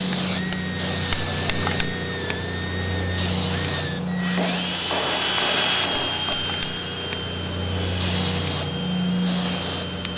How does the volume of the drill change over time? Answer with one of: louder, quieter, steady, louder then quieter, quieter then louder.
louder then quieter.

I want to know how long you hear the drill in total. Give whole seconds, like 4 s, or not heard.
10 s.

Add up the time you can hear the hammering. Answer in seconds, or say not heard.
2 s.